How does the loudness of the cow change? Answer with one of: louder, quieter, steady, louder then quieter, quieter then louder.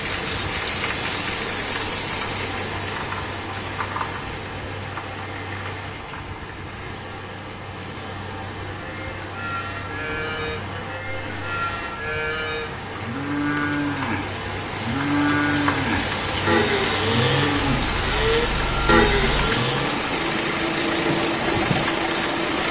louder.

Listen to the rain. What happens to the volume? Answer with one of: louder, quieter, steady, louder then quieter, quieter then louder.
quieter then louder.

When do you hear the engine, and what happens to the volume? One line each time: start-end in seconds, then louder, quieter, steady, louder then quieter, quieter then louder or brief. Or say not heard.
0.1-22.6 louder.